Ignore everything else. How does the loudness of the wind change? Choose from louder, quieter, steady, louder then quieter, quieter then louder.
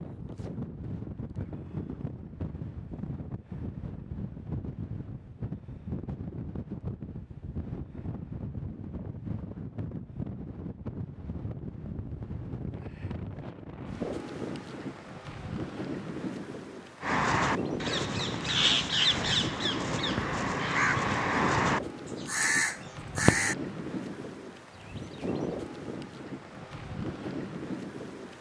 steady.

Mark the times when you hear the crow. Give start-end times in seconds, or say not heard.
17.0-23.6.